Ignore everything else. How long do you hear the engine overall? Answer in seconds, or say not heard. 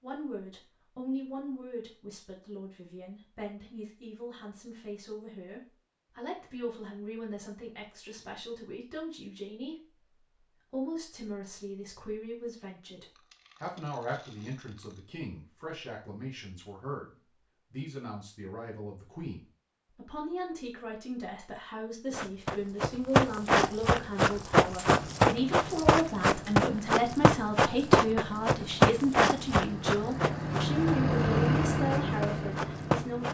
8 s.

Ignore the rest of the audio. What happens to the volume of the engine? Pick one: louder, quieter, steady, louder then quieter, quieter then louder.
louder.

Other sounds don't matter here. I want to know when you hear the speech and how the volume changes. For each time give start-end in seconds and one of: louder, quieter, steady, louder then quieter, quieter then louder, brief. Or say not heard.
0.0-33.2 louder.